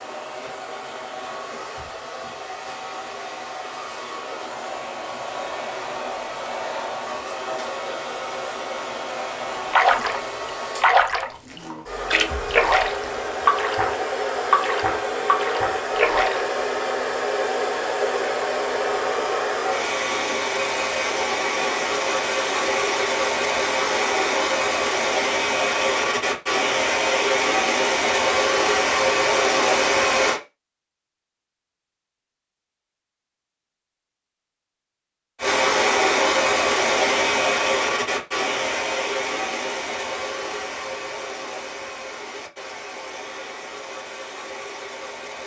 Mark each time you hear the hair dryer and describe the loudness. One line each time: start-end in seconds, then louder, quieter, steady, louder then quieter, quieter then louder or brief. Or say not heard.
0.0-30.4 louder
35.4-45.4 quieter.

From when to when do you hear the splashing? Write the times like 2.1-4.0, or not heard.
9.7-16.4.